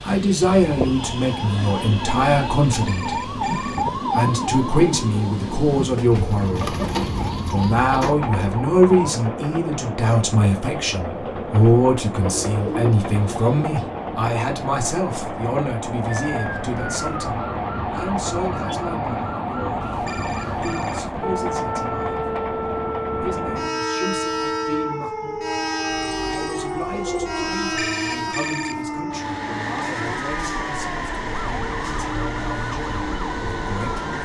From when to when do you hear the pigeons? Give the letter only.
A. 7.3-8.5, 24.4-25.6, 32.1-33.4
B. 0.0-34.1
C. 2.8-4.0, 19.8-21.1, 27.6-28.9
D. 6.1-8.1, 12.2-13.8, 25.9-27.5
D.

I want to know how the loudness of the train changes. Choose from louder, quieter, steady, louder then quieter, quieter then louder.
steady.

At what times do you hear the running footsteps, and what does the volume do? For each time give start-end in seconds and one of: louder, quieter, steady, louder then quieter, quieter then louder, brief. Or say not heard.
not heard.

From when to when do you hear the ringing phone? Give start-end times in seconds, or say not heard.
2.8-4.0, 19.8-21.1, 27.6-28.9.